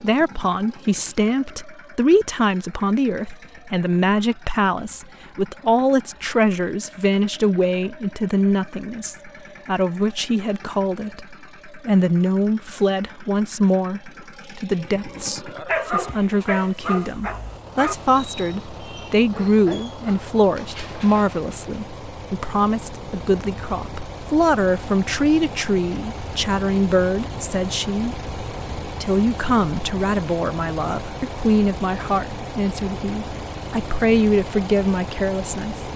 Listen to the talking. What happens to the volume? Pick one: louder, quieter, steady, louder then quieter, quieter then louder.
steady.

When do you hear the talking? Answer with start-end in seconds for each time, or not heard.
0.0-28.1, 29.0-35.8.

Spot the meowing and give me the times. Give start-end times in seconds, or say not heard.
not heard.